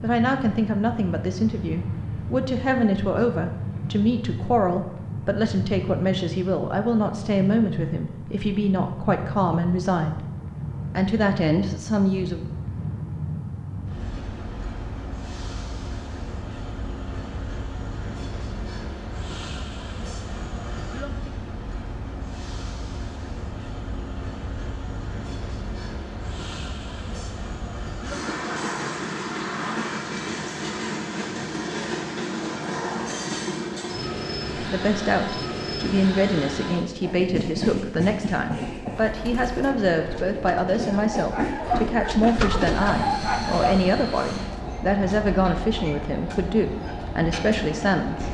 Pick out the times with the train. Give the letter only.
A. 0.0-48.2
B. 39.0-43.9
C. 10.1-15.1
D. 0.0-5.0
A.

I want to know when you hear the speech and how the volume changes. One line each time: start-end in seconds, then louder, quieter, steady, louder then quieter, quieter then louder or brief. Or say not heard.
0.0-10.2 steady
10.9-12.4 brief
34.5-48.2 steady.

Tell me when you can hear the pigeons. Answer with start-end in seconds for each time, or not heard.
39.0-43.9.